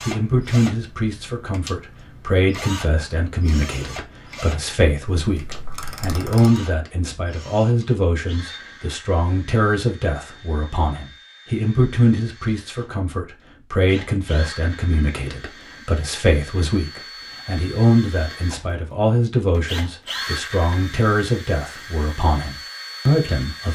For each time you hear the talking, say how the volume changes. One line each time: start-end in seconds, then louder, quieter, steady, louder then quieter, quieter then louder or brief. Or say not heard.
0.0-23.7 steady.